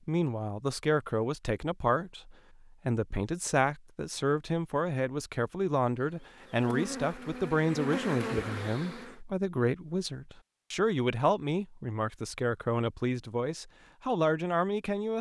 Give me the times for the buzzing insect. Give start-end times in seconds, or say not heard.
6.0-9.2.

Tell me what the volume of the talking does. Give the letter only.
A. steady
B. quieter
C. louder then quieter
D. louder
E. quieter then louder
A.